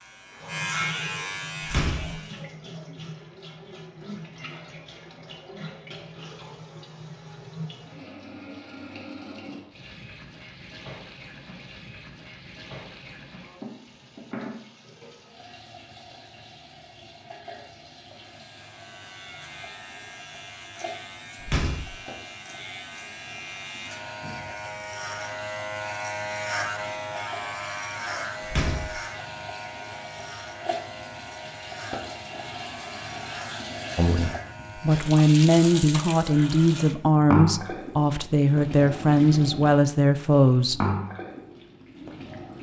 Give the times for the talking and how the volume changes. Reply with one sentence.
The talking can be heard from 34.0 to 40.9 s, at a steady volume.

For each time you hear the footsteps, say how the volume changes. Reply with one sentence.
The footsteps can't be heard in this clip.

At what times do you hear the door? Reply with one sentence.
You can hear the door from 1.6 to 2.1 s, from 21.4 to 21.9 s and from 28.4 to 29.0 s.